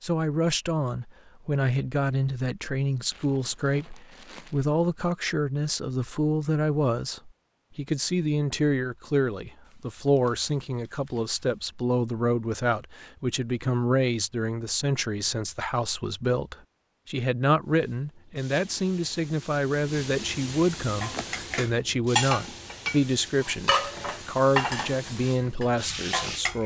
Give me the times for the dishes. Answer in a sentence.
The dishes can be heard from 21.0 to 26.6 s.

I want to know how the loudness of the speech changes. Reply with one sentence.
The loudness of the speech stays about the same.